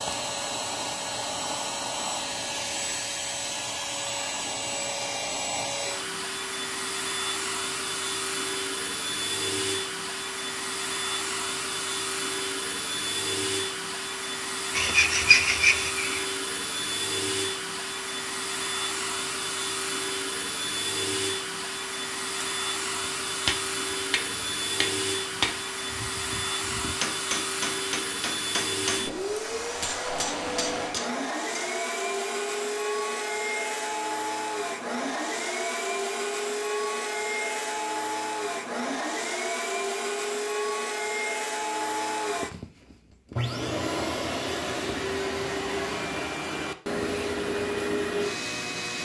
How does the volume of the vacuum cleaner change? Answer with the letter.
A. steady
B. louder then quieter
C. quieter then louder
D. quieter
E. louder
A.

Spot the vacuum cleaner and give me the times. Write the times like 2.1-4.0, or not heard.
0.0-49.0.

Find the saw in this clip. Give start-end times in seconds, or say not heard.
14.8-16.3.